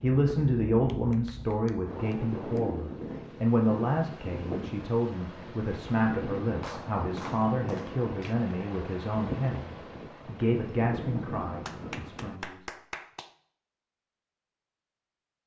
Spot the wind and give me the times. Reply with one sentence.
You can hear the wind from 0.0 to 12.4 s.